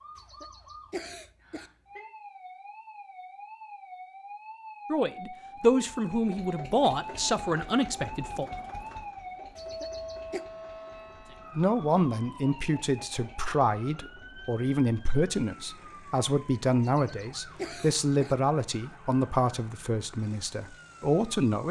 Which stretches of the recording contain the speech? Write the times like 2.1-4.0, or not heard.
4.9-8.4, 11.6-21.6.